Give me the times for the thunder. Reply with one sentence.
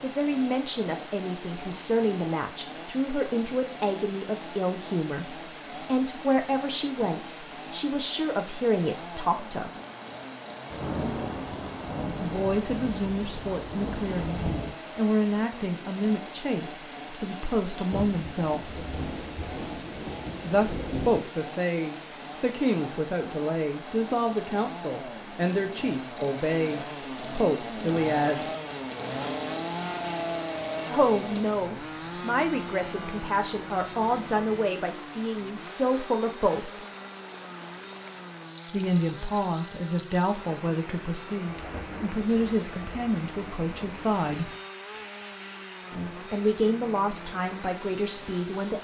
You can hear the thunder from 10.7 to 14.8 s, from 17.9 to 21.2 s and from 41.5 to 44.6 s.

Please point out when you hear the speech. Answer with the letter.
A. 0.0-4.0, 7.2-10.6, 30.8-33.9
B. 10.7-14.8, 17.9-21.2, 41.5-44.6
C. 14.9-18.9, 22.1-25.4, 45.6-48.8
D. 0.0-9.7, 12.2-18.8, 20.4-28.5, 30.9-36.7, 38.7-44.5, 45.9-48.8
D.